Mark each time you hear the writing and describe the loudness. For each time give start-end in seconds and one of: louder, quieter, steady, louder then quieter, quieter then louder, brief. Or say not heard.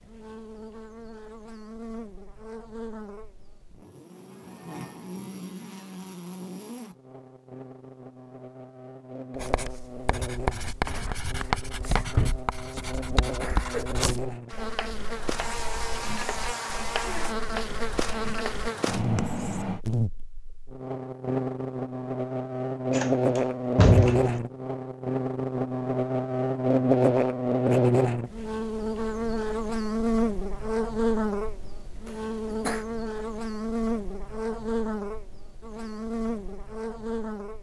9.3-19.8 quieter then louder.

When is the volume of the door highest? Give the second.
24 s.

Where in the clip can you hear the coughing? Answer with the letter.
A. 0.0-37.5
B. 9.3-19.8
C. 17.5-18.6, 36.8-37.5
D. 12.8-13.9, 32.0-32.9
D.